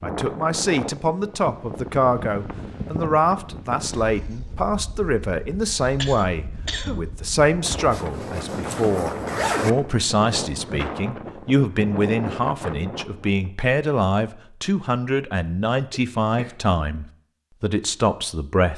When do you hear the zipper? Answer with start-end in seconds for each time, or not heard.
7.7-9.7.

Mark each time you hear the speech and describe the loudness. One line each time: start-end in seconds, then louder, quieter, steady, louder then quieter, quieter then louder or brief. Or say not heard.
0.0-18.7 steady.